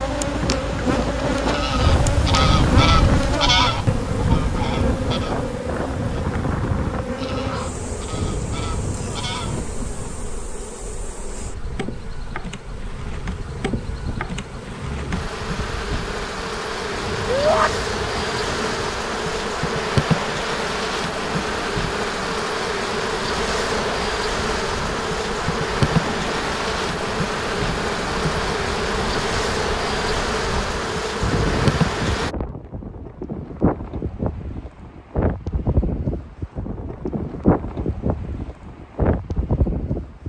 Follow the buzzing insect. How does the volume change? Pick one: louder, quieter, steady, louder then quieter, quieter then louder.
quieter then louder.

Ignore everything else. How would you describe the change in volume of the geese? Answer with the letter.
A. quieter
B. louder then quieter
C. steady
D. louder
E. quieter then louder
A.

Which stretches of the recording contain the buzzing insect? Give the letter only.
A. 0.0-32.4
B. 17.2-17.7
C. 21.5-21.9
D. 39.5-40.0
A.